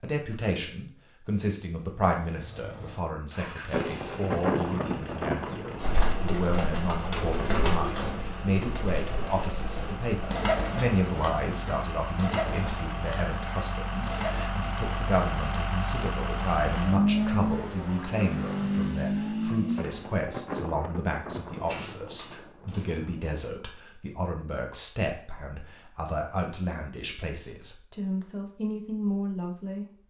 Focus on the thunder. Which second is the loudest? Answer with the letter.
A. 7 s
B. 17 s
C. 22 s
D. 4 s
D.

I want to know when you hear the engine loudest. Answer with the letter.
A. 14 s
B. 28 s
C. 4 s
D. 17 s
D.